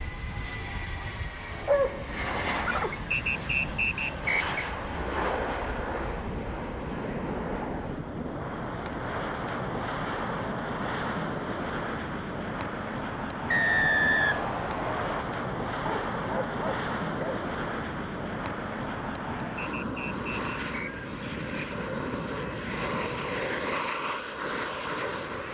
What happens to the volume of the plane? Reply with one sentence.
The volume of the plane stays about the same.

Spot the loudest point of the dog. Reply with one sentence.
The volume of the dog peaks at 2 seconds.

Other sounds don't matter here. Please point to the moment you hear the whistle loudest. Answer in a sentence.
The loudest moment of the whistle is at 14 seconds.